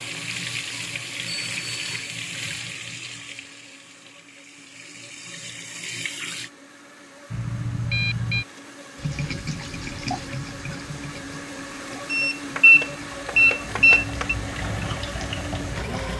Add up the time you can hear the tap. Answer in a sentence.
The tap can be heard for 14 seconds in total.